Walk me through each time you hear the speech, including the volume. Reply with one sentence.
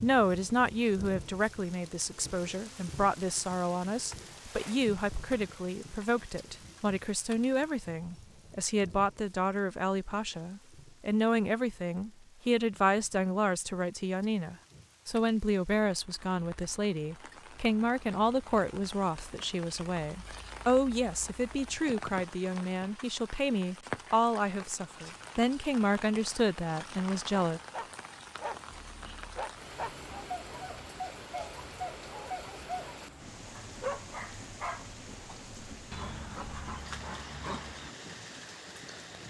You can hear the speech from 0.0 to 27.6 s, at a steady volume.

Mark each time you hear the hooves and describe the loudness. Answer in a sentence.
The hooves can't be heard in this clip.